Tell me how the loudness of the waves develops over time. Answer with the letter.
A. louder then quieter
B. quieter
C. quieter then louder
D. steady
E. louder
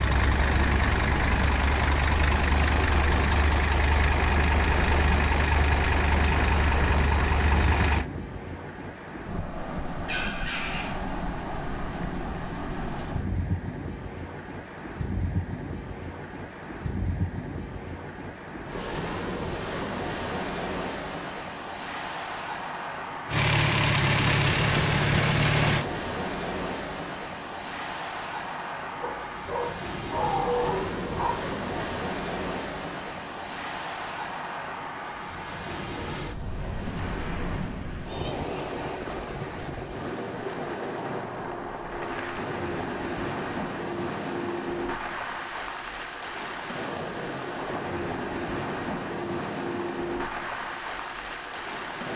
D.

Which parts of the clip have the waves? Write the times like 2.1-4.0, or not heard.
0.1-52.1.